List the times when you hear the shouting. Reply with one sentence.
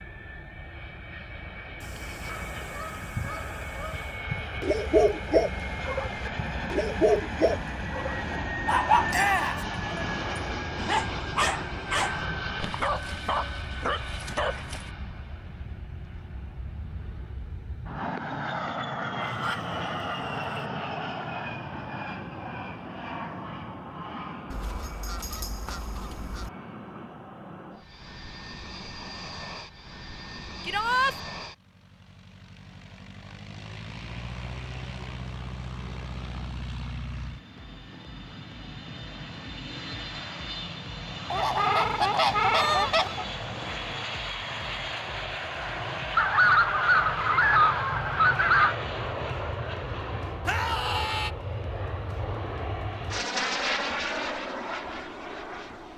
The shouting can be heard from 9.1 to 9.7 s, from 30.6 to 31.1 s and from 50.5 to 51.3 s.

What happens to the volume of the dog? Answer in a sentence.
The loudness of the dog goes down.